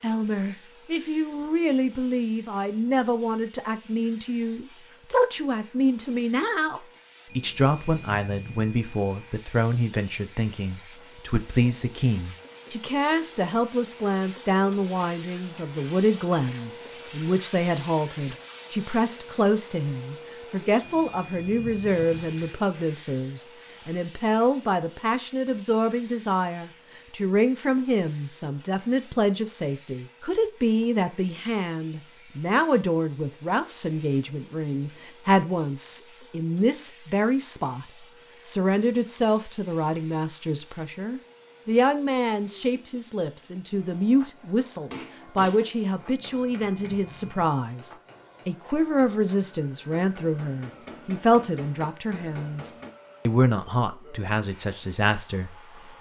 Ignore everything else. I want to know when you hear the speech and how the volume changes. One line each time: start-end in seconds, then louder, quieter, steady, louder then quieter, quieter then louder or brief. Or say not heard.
0.0-55.9 steady.